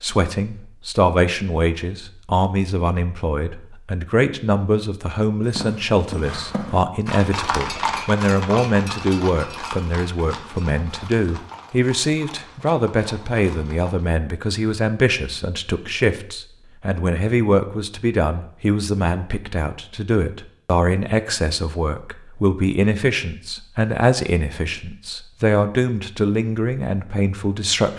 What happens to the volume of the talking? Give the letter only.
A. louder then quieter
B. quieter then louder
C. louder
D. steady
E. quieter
D.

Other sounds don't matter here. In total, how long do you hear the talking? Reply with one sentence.
The talking can be heard for 28 seconds in total.